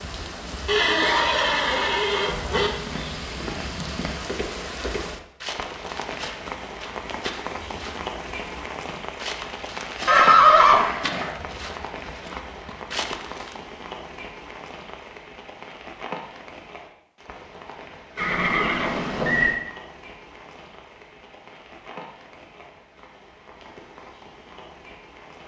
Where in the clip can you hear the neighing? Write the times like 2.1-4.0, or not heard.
0.7-2.7, 10.1-11.3, 18.1-19.6.